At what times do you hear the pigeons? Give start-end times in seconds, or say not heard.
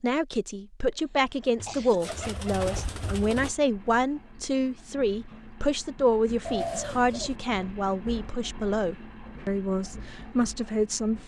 1.6-3.5, 6.5-7.3.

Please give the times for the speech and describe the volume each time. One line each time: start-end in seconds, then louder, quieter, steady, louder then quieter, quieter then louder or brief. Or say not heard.
0.0-11.2 steady.